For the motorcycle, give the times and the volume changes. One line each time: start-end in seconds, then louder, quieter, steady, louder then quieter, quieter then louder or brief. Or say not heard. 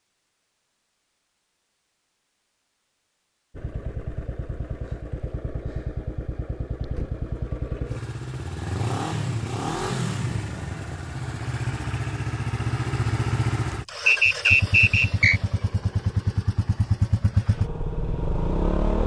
3.5-19.0 louder.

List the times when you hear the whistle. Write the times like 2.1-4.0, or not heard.
14.1-15.4.